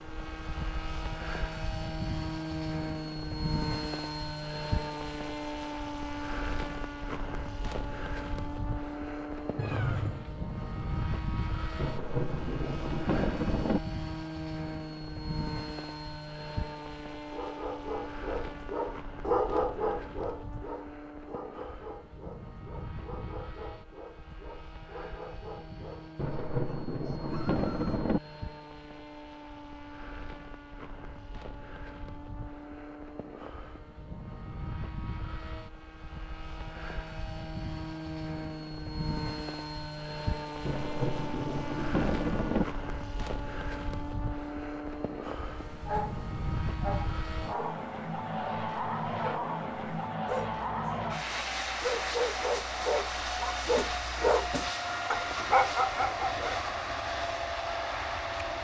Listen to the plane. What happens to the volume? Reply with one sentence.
The loudness of the plane goes down, then up.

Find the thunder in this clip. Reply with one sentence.
The thunder can be heard from 11.8 to 13.8 s, from 26.1 to 28.2 s and from 40.6 to 42.6 s.